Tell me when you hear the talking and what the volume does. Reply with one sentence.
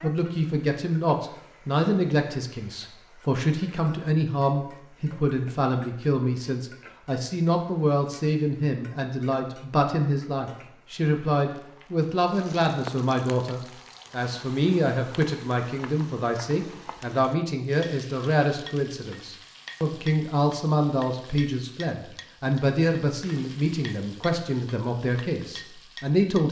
You can hear the talking from 0.0 to 26.4 s, at a steady volume.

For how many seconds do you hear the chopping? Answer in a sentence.
You can't hear the chopping here.